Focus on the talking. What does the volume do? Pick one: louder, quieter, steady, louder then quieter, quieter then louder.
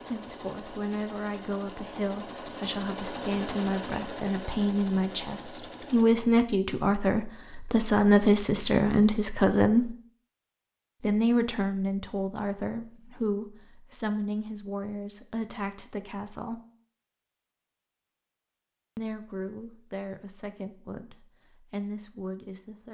louder then quieter.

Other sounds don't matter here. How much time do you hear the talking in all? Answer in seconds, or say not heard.
19 s.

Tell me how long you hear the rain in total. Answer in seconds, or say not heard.
not heard.